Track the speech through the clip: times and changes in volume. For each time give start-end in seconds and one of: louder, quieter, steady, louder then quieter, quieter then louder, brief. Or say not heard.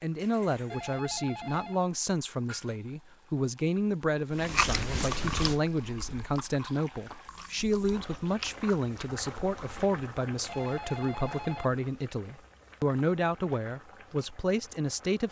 0.0-15.2 steady.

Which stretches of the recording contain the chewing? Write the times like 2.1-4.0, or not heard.
4.3-9.9.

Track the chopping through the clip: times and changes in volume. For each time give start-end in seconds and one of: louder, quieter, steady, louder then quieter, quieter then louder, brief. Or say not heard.
not heard.